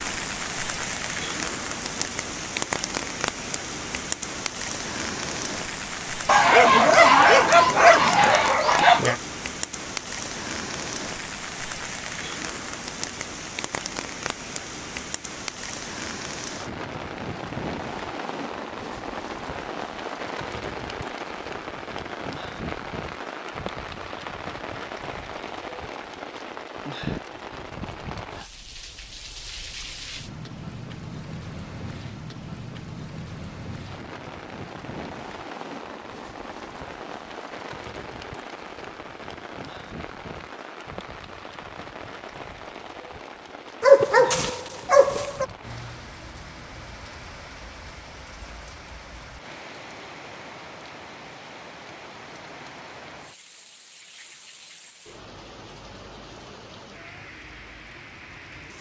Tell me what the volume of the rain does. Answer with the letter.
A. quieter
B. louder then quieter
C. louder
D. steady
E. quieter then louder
A.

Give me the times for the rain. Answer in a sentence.
The rain can be heard from 0.0 to 58.7 s.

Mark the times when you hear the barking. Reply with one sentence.
You can hear the barking from 6.2 to 9.2 s and from 43.8 to 45.5 s.